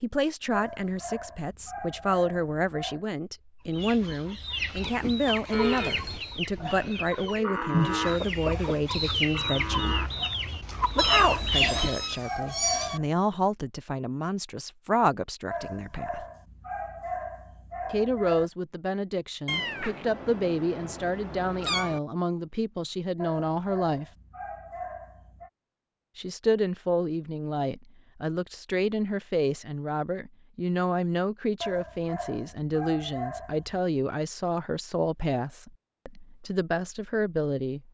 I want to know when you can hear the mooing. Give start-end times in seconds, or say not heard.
5.5-11.4.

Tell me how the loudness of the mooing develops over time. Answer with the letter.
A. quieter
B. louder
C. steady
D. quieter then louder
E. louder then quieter
E.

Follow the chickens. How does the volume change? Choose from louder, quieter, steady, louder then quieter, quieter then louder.
louder.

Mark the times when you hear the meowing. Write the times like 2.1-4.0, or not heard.
10.9-13.0, 19.4-22.0.